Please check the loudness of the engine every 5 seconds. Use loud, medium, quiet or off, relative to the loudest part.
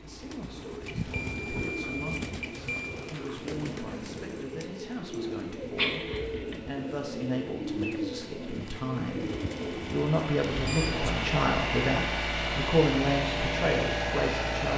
quiet, quiet, loud.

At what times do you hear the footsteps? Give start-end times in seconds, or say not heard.
not heard.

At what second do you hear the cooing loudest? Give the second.
8 s.